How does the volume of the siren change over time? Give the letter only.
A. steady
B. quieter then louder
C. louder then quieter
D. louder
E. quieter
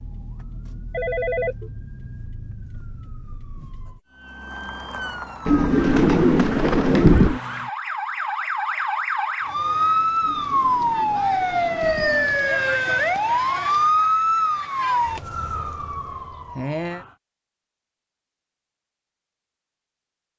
D.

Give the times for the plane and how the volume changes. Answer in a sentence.
You can't hear the plane here.